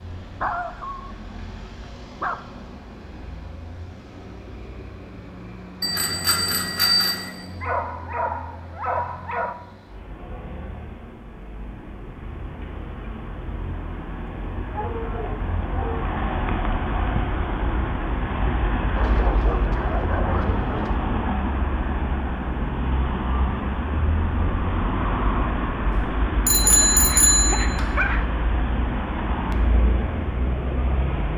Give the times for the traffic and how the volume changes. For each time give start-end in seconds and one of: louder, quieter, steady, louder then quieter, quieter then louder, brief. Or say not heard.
0.0-31.3 louder.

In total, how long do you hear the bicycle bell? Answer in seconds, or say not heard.
3 s.